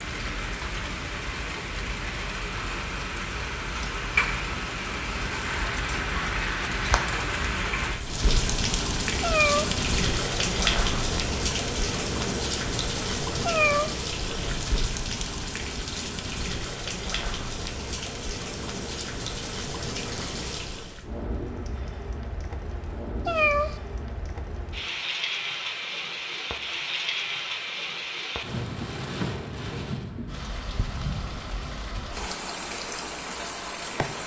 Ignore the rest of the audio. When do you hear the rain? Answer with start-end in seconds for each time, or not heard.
0.0-34.2.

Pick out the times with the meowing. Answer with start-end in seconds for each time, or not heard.
9.2-9.7, 13.4-13.9, 23.2-23.7.